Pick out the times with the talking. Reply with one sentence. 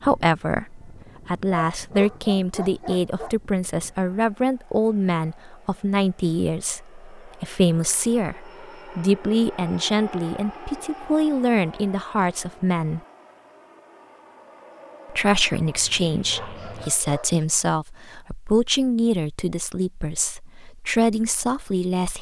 You can hear the talking from 0.0 to 13.0 s and from 15.1 to 22.1 s.